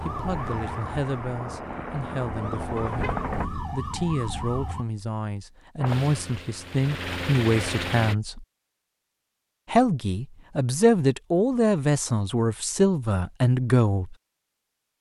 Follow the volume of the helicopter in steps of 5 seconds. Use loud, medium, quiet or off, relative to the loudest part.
loud, loud, off.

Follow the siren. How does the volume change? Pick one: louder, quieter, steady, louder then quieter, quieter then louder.
quieter then louder.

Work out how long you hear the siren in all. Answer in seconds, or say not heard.
5 s.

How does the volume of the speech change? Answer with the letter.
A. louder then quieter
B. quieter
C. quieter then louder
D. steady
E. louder
E.